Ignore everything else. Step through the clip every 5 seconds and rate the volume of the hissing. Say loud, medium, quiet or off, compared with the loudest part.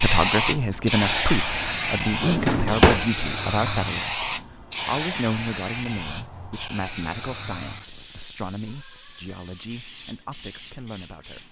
loud, medium, quiet.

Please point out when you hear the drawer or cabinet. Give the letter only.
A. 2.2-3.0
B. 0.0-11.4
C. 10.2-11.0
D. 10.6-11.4
A.